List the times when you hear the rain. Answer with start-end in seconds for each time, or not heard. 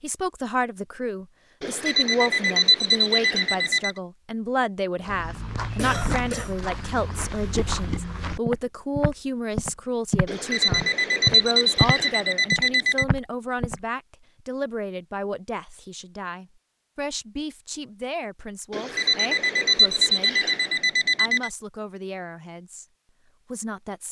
not heard.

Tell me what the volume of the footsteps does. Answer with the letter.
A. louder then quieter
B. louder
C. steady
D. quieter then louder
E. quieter
B.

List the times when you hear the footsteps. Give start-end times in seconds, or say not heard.
5.0-13.8.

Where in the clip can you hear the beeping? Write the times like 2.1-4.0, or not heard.
1.6-4.0, 10.2-13.1, 18.7-21.5.